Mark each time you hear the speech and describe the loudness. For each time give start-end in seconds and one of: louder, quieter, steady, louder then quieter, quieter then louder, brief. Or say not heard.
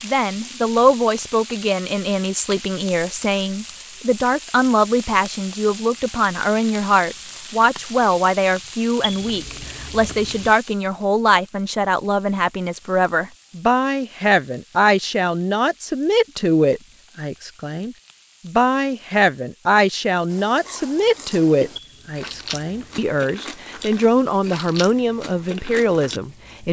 0.0-26.6 steady.